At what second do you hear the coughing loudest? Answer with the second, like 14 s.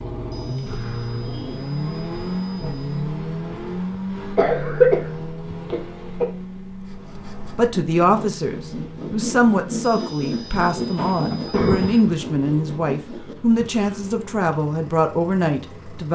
5 s.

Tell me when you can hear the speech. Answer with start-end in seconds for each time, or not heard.
7.5-16.1.